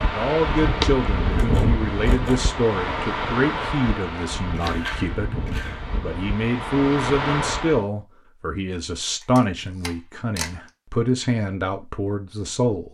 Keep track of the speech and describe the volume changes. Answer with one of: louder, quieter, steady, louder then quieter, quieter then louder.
steady.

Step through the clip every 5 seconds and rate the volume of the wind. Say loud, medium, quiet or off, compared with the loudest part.
loud, loud, off.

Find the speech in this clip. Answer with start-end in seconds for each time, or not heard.
0.0-12.8.